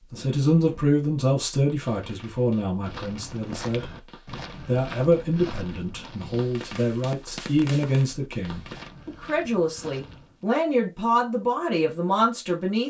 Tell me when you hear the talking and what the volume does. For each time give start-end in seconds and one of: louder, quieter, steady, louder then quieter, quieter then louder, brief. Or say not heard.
0.1-12.8 steady.